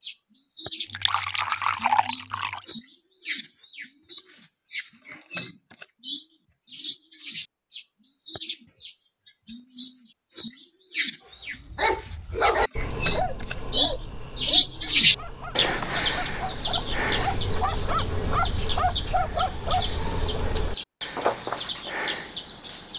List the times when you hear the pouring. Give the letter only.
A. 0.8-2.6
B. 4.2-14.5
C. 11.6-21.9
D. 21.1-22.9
A.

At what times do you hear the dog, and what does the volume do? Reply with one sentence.
You can hear the dog from 11.6 to 21.9 s, getting quieter then louder.